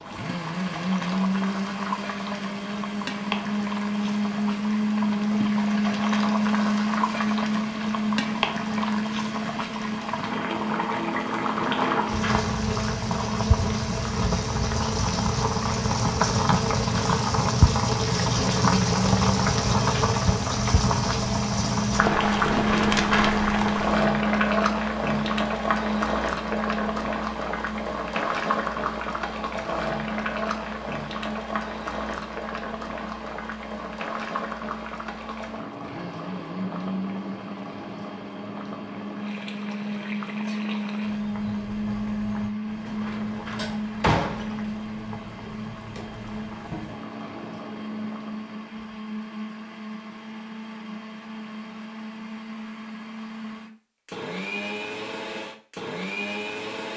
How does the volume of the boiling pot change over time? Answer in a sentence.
The volume of the boiling pot goes up, then down.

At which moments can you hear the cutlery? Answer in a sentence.
You can't hear the cutlery here.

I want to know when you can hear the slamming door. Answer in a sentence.
The slamming door can be heard from 11.6 to 12.6 s, from 22.5 to 23.4 s and from 42.9 to 44.5 s.